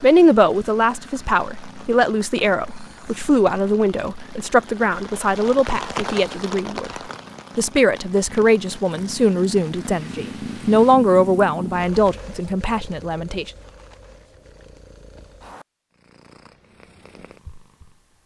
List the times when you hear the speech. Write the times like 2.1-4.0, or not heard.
0.0-6.9, 7.5-13.5.